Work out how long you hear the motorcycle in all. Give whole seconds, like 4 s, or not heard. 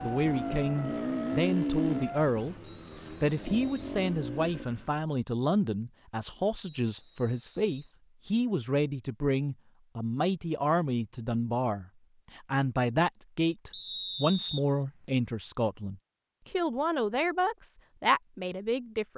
5 s.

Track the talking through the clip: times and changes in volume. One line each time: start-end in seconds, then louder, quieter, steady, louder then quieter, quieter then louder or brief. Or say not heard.
0.0-2.5 brief
3.2-19.1 steady.